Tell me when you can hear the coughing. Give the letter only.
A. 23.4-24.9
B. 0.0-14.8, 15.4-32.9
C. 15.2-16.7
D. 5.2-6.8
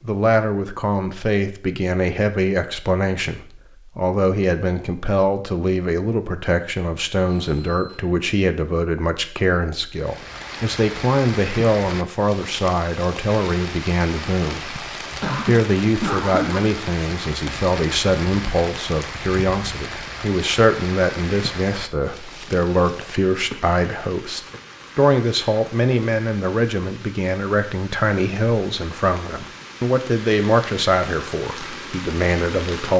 C.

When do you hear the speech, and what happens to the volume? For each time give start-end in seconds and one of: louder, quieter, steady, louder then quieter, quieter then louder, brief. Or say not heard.
0.0-14.8 steady
15.4-32.9 steady.